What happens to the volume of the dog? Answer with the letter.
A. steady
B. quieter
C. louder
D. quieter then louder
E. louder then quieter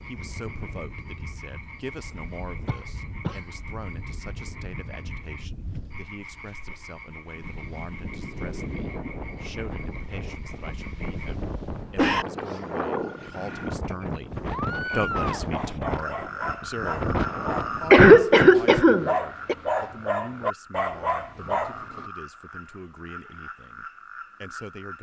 C.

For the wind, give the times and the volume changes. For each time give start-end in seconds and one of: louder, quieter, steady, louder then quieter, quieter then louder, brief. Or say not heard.
0.0-17.9 louder.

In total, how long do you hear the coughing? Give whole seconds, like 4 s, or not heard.
3 s.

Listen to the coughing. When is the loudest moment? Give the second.
18 s.